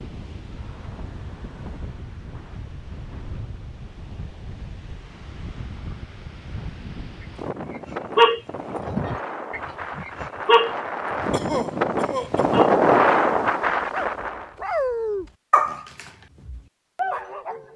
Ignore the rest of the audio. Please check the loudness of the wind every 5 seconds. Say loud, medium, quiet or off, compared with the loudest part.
quiet, quiet, loud, off.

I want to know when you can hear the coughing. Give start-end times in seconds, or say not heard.
11.3-12.6.